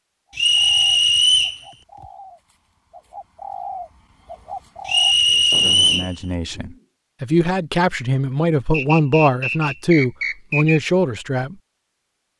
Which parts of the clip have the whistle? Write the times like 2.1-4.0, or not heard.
0.3-1.6, 4.8-6.1, 8.7-10.8.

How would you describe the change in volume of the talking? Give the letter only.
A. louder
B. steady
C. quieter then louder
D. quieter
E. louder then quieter
A.